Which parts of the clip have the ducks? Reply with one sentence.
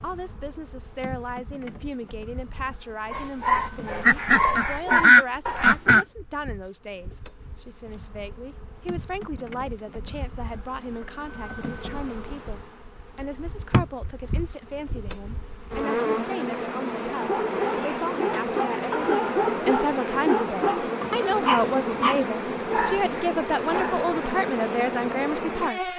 You can hear the ducks from 4.0 to 6.0 s.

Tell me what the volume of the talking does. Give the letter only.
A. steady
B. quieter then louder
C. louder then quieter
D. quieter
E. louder
E.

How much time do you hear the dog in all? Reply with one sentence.
You can hear the dog for 10 seconds altogether.